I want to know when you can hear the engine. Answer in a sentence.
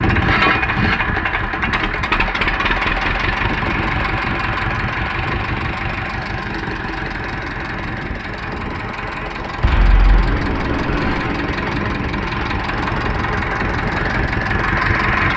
You can hear the engine from 0.0 to 15.3 s.